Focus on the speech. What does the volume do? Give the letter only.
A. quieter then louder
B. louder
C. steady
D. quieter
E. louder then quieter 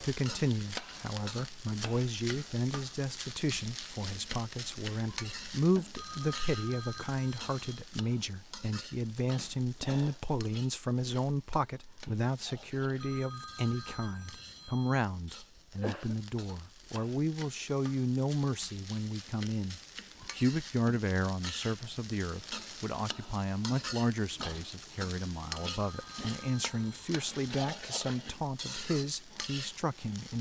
C.